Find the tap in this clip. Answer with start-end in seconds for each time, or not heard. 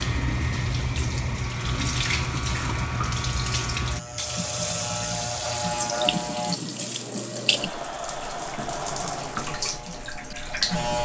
0.0-11.0.